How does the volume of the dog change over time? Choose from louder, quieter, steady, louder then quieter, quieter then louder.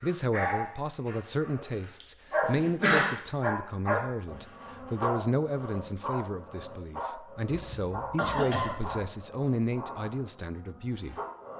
quieter.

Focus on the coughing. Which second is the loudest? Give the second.
3 s.